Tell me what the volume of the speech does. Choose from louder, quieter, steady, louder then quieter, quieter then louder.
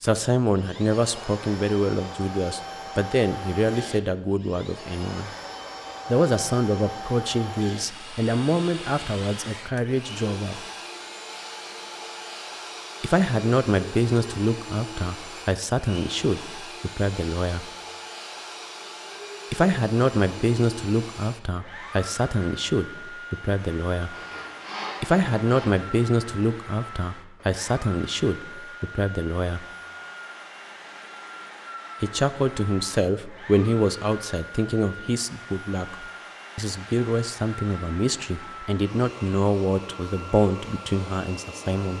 steady.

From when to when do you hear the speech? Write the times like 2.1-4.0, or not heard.
0.0-5.3, 6.0-10.6, 13.0-17.7, 19.5-24.1, 25.0-29.6, 32.0-41.9.